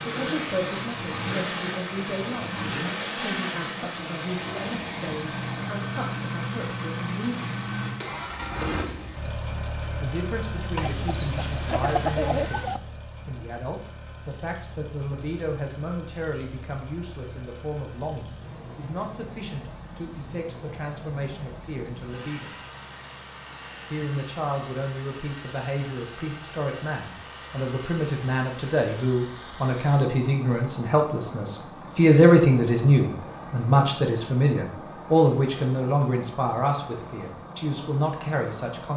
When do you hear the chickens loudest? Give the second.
12 s.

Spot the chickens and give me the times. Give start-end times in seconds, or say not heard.
10.8-12.8.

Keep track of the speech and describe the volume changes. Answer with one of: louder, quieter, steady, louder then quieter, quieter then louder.
louder.